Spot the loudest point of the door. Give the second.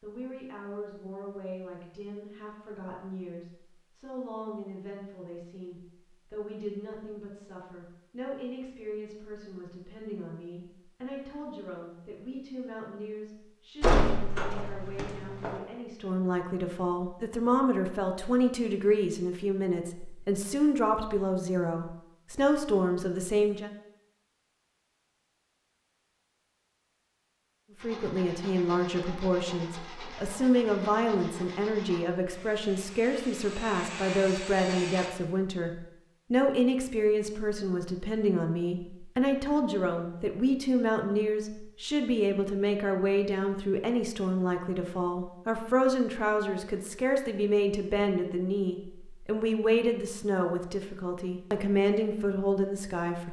14 s.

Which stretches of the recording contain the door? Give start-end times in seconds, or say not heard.
13.8-15.6.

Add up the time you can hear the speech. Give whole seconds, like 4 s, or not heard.
49 s.